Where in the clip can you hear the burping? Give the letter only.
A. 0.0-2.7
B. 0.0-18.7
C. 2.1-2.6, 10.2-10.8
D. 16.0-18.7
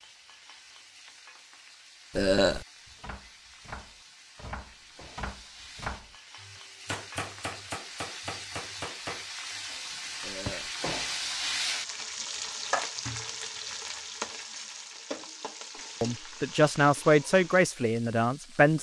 C.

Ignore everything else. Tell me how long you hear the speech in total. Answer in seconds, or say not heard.
3 s.